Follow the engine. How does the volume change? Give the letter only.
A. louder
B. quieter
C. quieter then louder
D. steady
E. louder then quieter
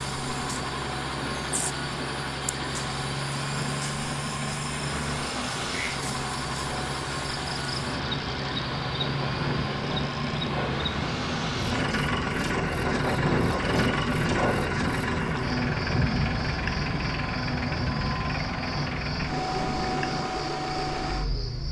D.